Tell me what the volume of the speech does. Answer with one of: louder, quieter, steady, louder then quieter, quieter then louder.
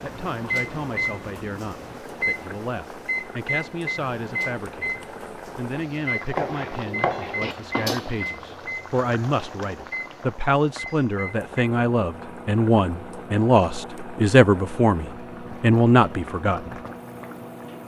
louder.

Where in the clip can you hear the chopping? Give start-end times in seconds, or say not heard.
6.3-7.5.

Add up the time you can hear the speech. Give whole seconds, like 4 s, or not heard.
16 s.